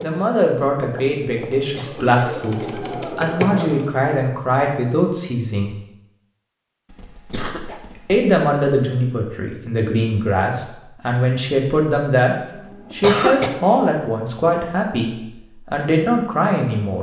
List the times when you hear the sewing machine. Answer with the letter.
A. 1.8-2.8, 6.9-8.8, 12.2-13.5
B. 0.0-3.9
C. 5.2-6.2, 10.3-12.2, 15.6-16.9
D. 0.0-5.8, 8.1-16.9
B.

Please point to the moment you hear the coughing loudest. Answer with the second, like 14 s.
13 s.